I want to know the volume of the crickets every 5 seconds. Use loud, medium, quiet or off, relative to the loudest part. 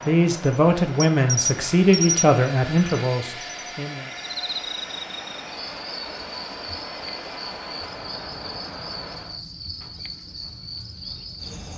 loud, medium, medium.